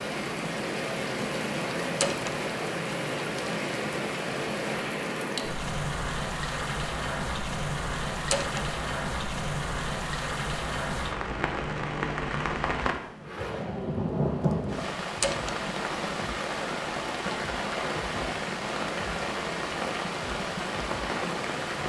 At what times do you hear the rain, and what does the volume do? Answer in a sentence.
You can hear the rain from 0.0 to 21.8 s, at a steady volume.